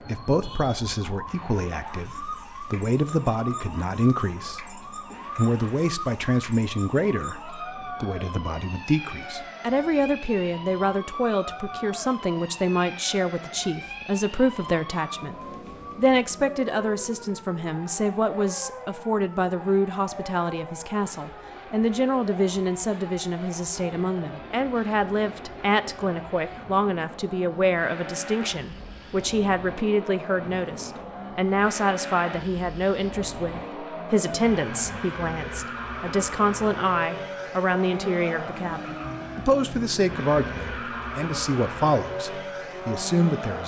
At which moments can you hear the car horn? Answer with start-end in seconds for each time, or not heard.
not heard.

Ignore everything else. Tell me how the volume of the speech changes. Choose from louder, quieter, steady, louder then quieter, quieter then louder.
steady.